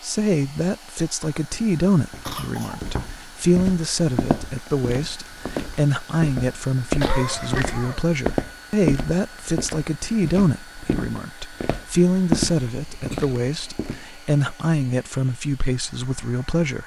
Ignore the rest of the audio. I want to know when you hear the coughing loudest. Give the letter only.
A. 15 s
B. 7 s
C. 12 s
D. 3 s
B.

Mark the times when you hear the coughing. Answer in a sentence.
The coughing can be heard from 2.2 to 2.8 s, from 7.0 to 8.1 s and from 13.1 to 13.9 s.